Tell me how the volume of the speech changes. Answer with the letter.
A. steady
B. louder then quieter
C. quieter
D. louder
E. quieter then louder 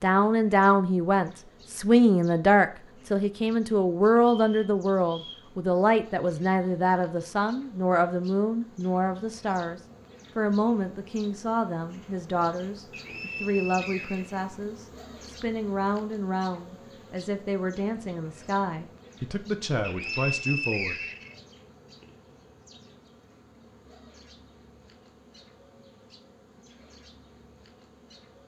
C.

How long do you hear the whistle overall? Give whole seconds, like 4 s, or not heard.
4 s.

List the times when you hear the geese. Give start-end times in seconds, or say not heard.
not heard.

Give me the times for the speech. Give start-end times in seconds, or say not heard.
0.0-20.9.